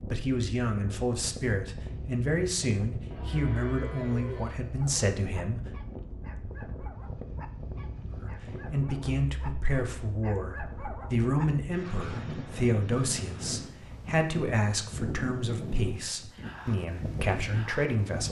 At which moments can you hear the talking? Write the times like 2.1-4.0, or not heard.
0.1-5.7, 8.2-18.2.